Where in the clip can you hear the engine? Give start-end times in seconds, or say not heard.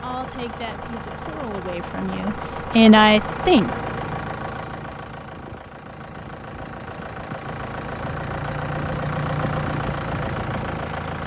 0.0-11.2.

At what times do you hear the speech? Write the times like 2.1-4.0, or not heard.
0.0-3.7.